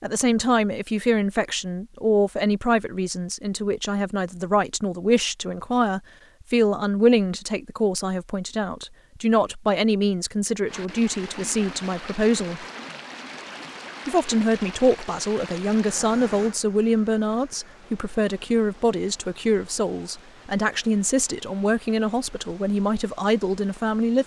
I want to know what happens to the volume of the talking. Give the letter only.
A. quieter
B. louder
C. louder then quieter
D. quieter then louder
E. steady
E.